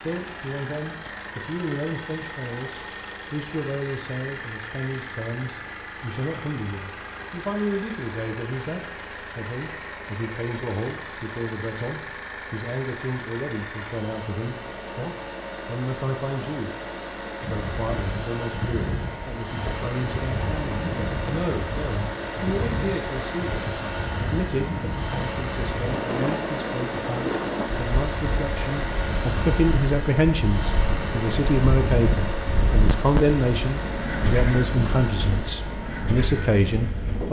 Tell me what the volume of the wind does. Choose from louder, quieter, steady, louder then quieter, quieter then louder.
steady.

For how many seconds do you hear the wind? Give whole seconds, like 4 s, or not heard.
20 s.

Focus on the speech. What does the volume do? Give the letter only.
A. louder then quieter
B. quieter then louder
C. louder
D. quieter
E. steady
C.